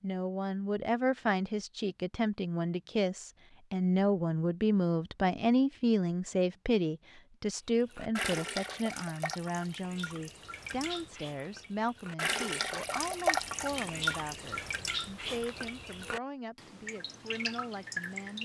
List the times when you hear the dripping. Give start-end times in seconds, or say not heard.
7.9-18.4.